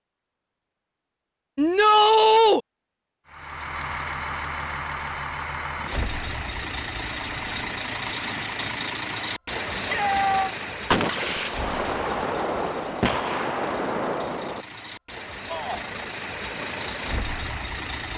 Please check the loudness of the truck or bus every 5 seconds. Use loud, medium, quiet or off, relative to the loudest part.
loud, loud, medium, loud.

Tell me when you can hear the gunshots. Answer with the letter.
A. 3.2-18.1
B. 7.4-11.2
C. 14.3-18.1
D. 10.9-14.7
D.